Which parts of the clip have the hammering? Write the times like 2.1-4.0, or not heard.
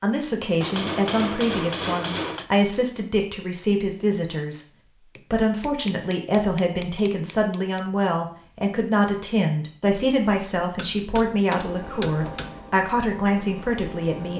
0.6-2.5, 5.2-7.8, 10.8-12.6.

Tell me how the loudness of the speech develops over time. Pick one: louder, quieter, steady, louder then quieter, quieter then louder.
steady.